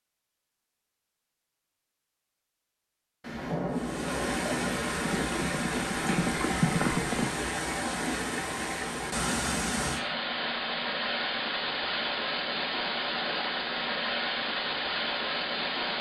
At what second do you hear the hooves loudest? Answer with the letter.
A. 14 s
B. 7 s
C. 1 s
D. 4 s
B.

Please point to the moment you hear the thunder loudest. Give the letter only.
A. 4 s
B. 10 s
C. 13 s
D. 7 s
A.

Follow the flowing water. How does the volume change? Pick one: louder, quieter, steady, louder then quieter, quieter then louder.
steady.